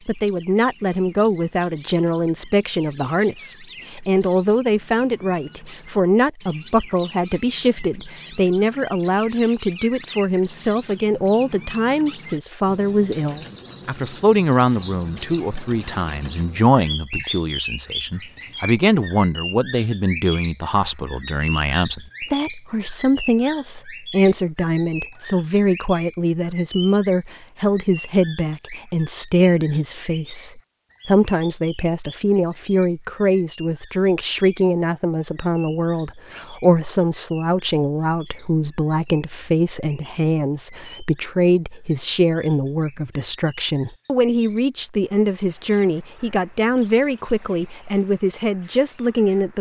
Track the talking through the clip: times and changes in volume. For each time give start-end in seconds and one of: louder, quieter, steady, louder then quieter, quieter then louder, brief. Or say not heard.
0.1-49.5 steady.